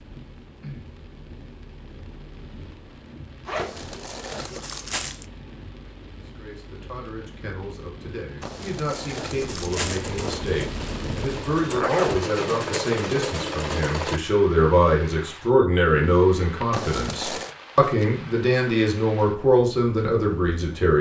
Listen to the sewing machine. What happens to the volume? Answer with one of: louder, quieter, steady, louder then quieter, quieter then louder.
louder.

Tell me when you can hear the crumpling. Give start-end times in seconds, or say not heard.
3.5-5.2, 8.4-10.4, 16.7-17.6.